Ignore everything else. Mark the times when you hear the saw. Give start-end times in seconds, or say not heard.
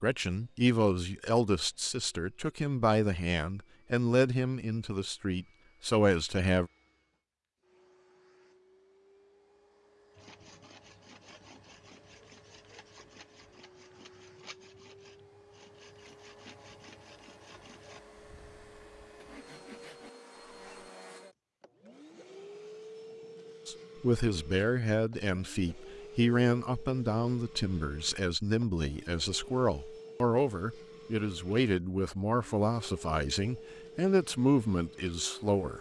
10.2-20.9.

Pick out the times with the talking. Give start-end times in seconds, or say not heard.
0.0-6.7, 23.6-35.7.